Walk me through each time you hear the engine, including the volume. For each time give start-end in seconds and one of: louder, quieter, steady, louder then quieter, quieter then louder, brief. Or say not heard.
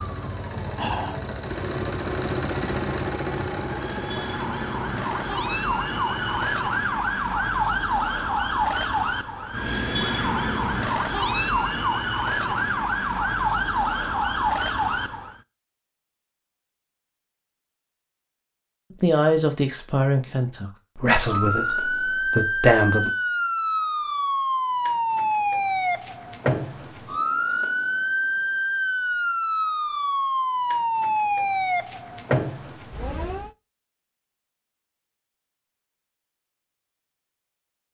0.0-6.6 louder then quieter.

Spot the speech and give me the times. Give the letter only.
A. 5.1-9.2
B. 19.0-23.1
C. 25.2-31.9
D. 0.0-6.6
B.